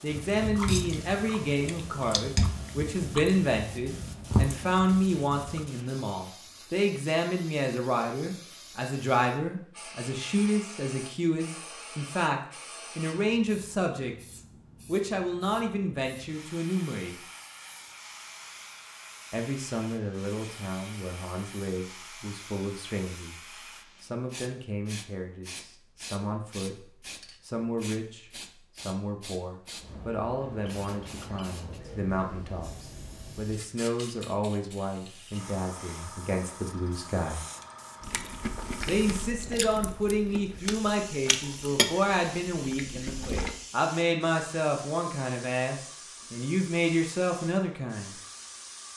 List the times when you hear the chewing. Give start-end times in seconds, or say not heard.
0.1-5.7, 38.0-43.6.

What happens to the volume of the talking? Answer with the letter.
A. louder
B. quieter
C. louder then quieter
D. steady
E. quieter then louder
E.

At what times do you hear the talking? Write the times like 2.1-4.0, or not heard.
0.0-17.1, 19.3-37.4, 38.9-48.1.